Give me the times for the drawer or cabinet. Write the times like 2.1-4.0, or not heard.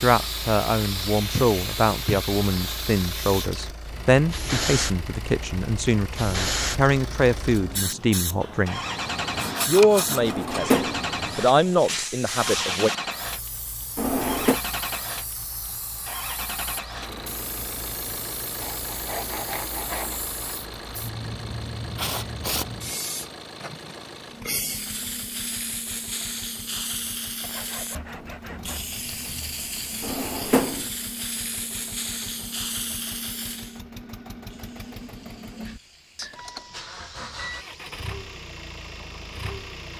10.2-11.1, 13.9-14.6, 30.0-30.9.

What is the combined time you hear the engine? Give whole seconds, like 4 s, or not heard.
40 s.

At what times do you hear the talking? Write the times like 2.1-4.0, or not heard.
0.0-8.8, 9.7-12.9.